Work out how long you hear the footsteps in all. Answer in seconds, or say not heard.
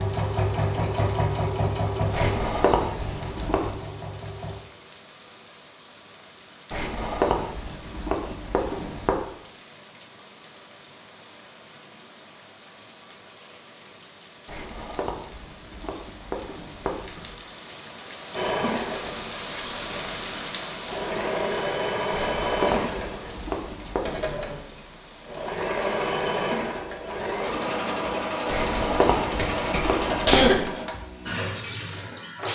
not heard.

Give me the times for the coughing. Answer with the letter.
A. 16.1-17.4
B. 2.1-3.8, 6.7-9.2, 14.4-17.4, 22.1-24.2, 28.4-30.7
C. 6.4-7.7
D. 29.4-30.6
D.